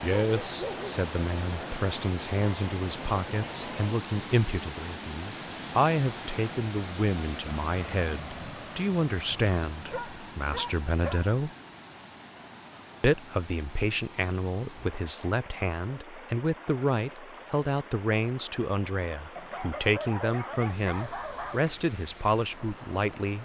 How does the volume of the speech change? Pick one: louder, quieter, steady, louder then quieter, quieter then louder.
steady.